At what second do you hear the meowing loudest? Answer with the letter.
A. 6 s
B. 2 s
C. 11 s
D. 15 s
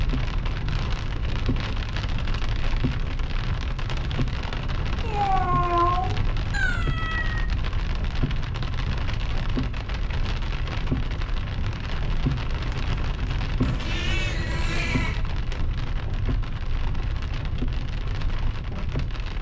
A.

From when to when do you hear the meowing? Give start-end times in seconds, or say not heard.
5.0-7.5, 13.6-15.2.